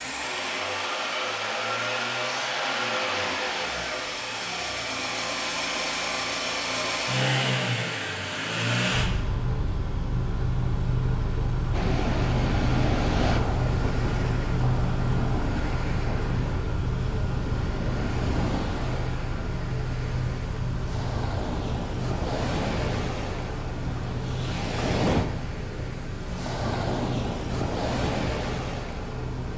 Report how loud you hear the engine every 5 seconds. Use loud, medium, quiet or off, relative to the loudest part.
loud, loud, loud, loud, medium, medium.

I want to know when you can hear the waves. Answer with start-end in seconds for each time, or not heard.
11.7-29.5.